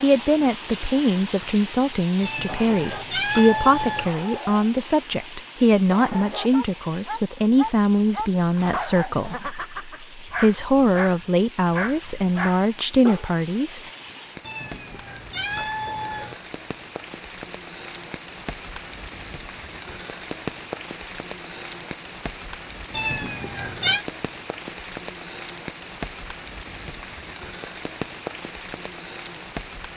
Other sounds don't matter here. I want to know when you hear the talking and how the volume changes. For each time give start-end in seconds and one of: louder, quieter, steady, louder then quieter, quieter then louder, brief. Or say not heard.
0.0-13.9 steady.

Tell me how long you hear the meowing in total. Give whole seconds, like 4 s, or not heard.
5 s.